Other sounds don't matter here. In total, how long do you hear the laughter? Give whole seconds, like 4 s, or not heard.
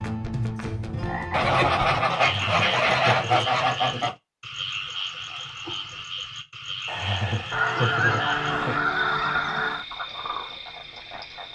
4 s.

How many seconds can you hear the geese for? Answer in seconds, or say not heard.
5 s.